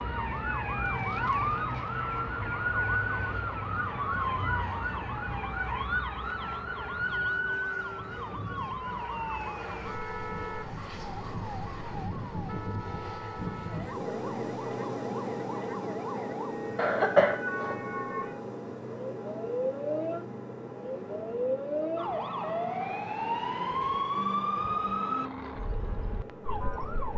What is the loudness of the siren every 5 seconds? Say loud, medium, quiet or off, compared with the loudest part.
loud, loud, medium, medium, loud, medium.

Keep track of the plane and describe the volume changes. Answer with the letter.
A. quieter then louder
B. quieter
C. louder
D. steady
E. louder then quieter
E.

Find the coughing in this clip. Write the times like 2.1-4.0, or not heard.
16.8-17.8.